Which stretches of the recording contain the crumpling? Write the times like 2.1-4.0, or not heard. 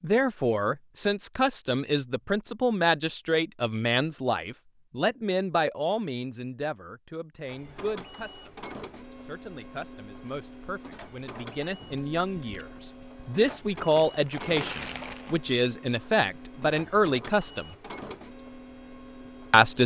14.1-15.4.